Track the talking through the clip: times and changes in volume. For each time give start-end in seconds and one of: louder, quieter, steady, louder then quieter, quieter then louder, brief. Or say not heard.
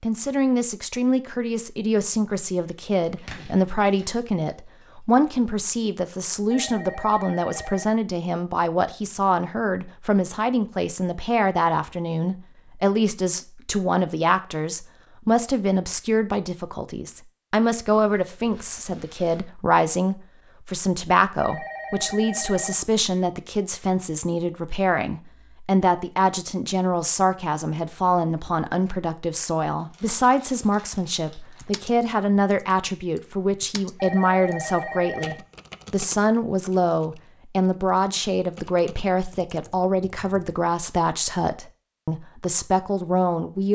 0.0-43.6 steady.